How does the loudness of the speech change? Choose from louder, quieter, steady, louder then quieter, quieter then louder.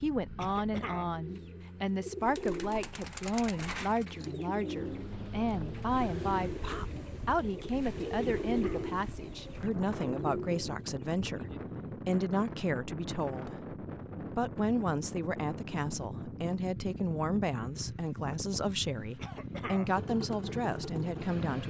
steady.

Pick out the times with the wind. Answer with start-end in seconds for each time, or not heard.
4.7-21.5.